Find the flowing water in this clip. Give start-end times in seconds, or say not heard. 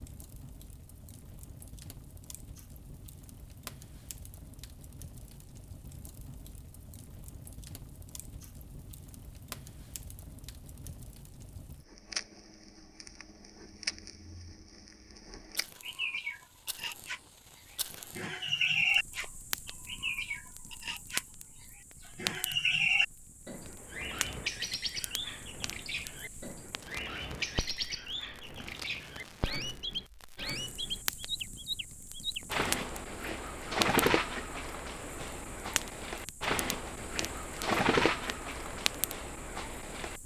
not heard.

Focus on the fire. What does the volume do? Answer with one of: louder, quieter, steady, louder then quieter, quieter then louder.
louder.